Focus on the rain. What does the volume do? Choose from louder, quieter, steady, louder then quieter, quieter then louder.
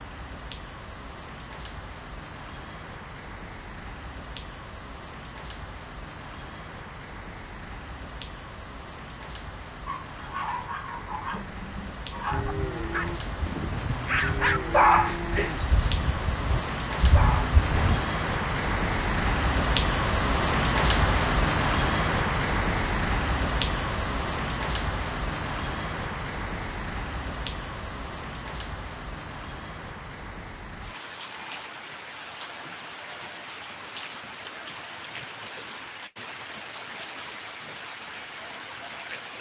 louder then quieter.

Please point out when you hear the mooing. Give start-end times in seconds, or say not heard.
12.3-18.0.